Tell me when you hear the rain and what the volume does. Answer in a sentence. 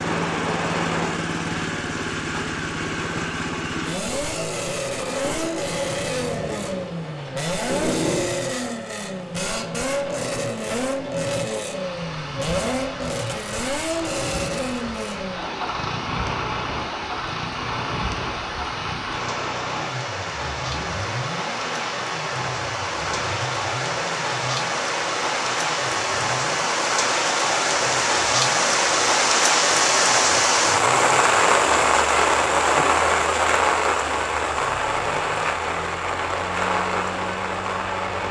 The rain can be heard from 0.0 to 38.2 s, getting louder.